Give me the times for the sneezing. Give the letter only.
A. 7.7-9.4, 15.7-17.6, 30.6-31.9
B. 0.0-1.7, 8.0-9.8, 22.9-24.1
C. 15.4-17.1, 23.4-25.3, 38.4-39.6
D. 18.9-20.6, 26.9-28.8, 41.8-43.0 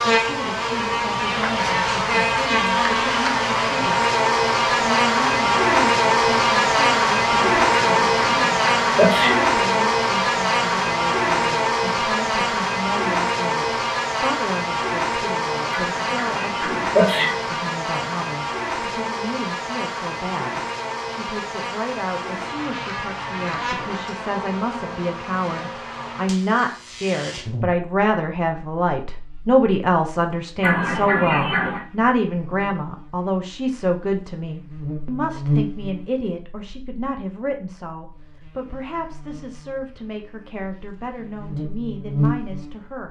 A.